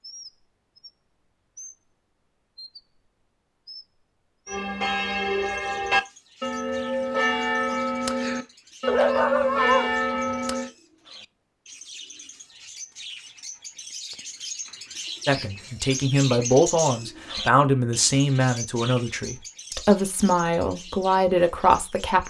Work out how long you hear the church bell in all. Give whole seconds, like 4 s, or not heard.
6 s.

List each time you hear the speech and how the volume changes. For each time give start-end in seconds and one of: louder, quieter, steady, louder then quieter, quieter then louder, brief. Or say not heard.
15.2-22.2 steady.